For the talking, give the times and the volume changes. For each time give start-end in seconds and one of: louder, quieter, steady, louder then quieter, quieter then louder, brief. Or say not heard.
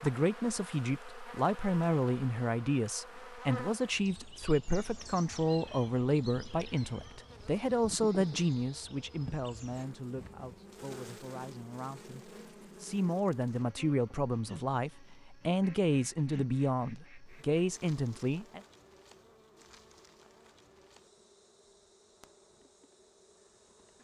0.0-18.6 steady.